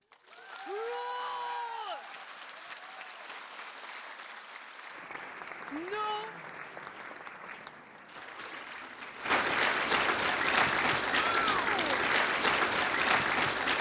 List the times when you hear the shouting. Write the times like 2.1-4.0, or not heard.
0.7-2.0, 5.7-6.3, 11.2-12.1.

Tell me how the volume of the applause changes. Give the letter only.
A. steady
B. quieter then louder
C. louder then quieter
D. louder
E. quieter
D.